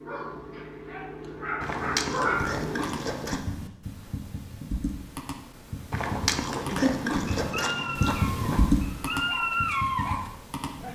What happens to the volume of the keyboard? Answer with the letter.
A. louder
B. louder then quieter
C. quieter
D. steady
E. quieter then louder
B.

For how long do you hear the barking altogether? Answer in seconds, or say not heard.
7 s.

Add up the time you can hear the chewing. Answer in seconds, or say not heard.
5 s.